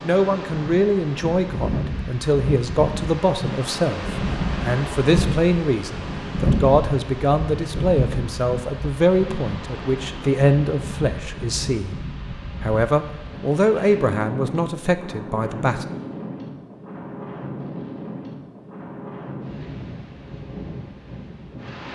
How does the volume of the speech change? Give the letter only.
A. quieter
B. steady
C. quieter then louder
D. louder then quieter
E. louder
B.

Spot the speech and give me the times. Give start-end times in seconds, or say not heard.
0.0-12.0, 12.6-15.8.